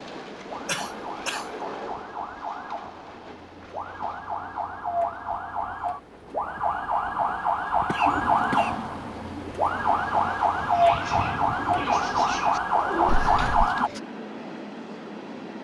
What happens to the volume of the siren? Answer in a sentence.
The loudness of the siren goes up.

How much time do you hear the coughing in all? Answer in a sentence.
You can hear the coughing for 2 seconds altogether.